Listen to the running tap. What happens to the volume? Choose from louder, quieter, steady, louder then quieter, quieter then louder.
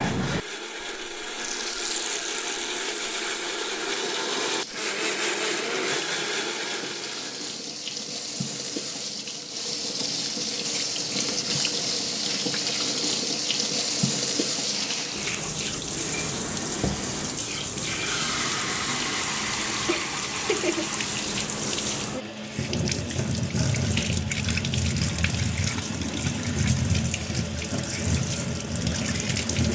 louder.